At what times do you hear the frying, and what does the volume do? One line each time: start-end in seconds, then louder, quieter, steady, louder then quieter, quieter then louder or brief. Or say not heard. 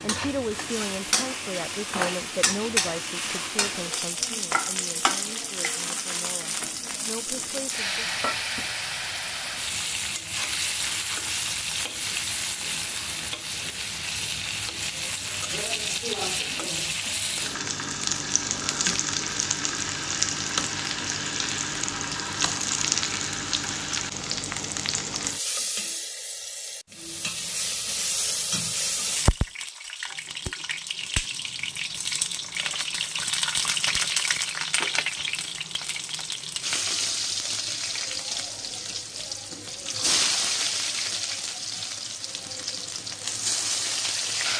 0.0-44.5 steady.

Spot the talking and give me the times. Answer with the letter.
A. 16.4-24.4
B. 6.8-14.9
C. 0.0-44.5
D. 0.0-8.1
D.